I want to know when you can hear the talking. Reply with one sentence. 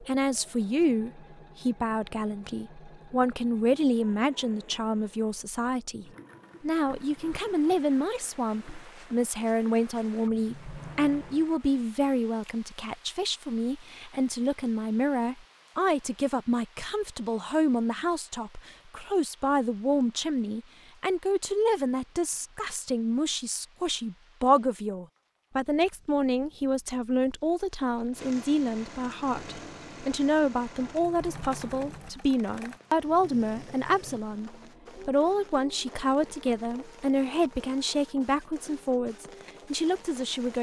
The talking can be heard from 0.0 to 40.5 s.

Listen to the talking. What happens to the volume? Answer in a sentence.
The volume of the talking stays about the same.